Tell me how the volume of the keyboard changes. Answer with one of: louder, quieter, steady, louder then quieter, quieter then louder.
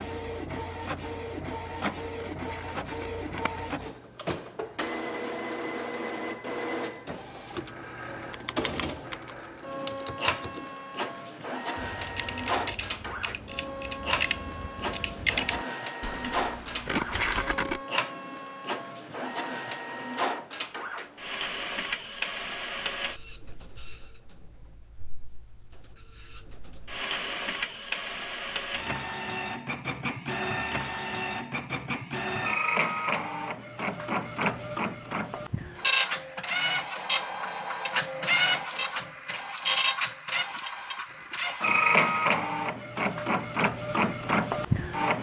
louder then quieter.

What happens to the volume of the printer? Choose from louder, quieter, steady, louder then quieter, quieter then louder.
louder.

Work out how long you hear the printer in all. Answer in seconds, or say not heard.
45 s.